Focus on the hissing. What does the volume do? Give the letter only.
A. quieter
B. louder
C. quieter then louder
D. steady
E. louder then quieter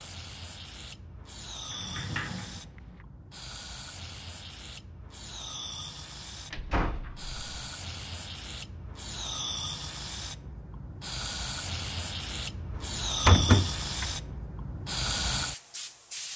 B.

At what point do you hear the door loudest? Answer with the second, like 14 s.
13 s.